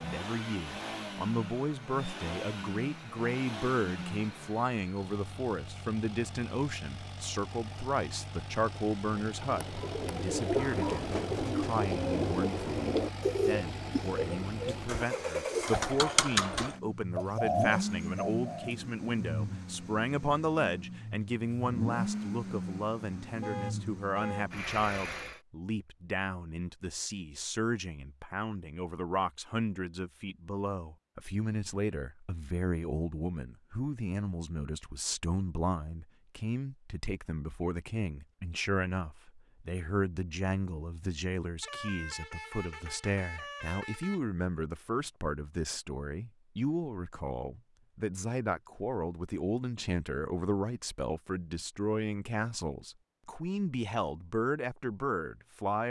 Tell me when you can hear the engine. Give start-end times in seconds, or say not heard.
0.0-25.4.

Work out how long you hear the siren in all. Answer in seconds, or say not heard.
not heard.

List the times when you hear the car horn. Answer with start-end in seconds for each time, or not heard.
23.4-24.5, 41.6-44.2.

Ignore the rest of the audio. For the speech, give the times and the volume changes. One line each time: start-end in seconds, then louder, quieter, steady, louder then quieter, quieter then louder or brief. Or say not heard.
0.0-55.8 steady.